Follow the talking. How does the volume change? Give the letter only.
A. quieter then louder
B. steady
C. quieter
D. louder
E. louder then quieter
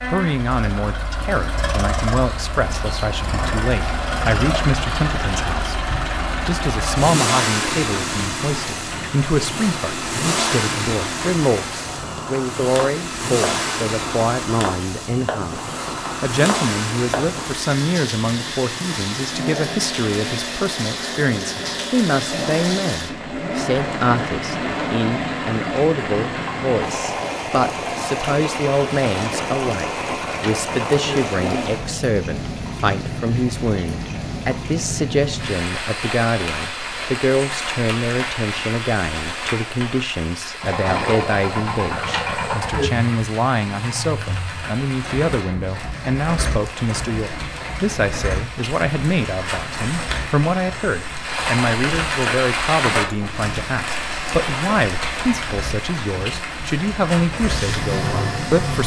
B.